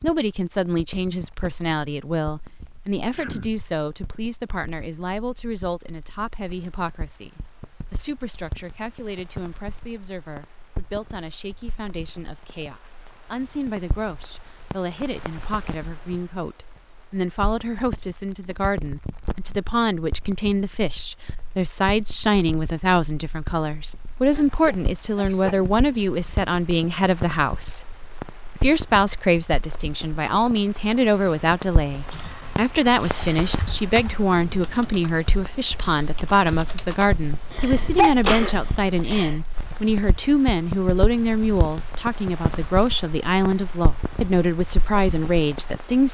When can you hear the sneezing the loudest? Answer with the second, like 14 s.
38 s.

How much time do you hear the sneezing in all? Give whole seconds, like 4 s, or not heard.
4 s.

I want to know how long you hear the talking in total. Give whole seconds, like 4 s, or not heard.
46 s.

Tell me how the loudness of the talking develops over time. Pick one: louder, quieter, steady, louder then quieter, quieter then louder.
louder.